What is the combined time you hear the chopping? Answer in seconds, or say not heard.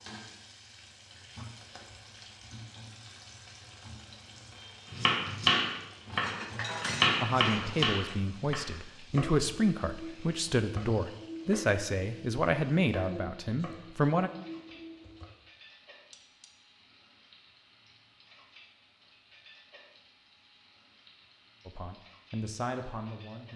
10 s.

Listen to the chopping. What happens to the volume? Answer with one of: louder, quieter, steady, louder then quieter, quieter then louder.
quieter.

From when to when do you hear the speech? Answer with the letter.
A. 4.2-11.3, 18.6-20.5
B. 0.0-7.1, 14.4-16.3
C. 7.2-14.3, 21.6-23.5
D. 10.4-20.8
C.